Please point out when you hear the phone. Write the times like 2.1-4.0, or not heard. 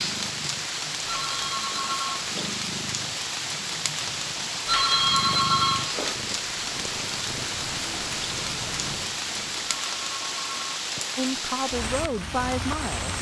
1.1-2.5, 4.7-6.2, 9.7-11.2.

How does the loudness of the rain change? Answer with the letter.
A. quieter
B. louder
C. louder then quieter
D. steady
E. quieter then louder
D.